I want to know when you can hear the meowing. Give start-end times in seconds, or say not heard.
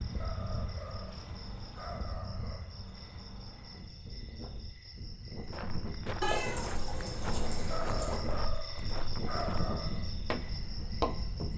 6.2-8.2.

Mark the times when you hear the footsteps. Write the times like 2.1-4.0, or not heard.
5.3-11.5.